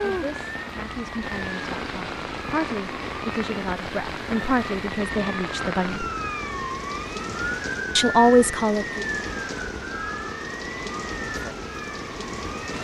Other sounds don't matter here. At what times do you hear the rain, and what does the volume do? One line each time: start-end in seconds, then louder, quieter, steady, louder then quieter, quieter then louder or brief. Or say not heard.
0.0-12.7 steady.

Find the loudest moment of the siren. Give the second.
8 s.